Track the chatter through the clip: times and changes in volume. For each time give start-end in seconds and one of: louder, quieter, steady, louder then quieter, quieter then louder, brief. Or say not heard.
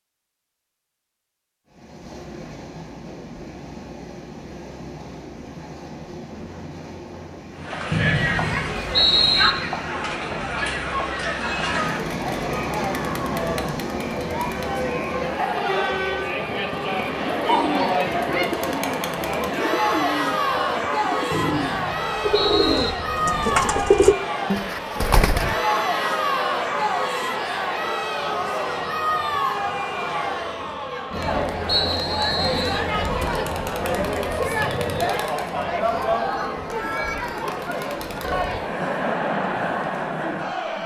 7.5-40.8 steady.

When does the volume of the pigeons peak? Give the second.
24 s.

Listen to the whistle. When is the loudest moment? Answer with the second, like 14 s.
9 s.